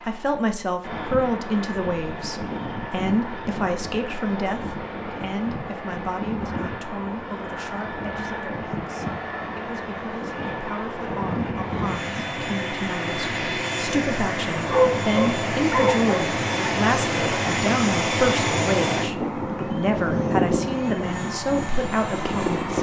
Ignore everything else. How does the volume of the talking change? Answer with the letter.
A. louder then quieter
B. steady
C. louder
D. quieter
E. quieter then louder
E.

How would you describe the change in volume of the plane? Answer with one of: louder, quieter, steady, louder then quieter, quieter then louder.
louder.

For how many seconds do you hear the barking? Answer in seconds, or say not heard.
2 s.